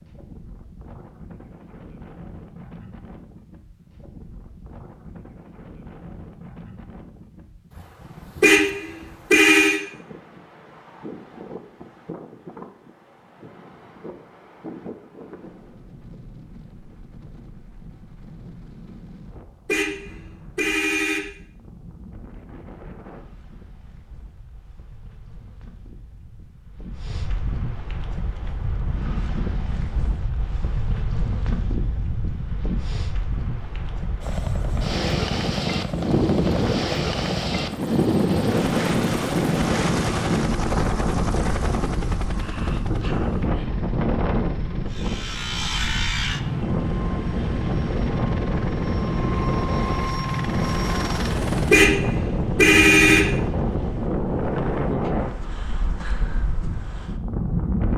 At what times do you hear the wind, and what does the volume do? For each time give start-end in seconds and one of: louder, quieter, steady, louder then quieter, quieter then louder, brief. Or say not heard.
0.0-57.9 louder.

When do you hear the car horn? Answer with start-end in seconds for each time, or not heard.
8.4-9.8, 19.6-21.2, 51.7-53.3.